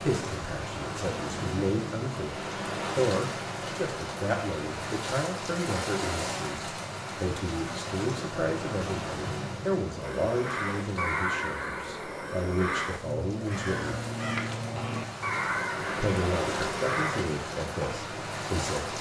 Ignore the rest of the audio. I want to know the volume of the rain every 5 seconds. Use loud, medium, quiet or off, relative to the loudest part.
loud, loud, medium, loud.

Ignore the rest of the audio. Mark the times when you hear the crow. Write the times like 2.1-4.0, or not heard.
10.0-17.2.